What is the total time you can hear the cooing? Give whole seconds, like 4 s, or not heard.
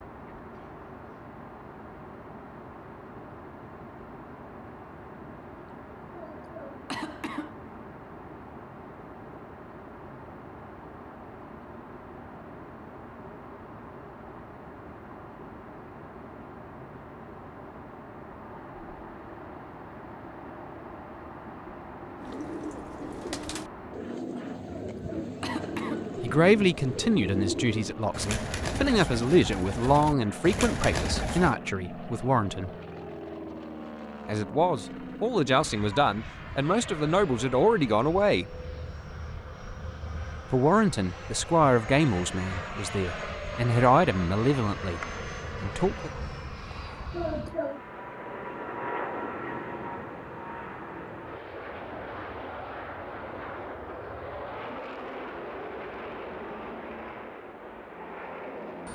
9 s.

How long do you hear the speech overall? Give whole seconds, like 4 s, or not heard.
16 s.